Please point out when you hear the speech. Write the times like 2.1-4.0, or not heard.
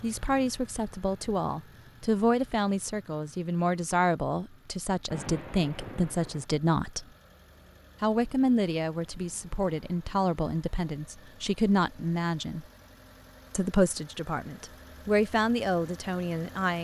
0.0-7.0, 8.0-12.7, 13.5-16.7.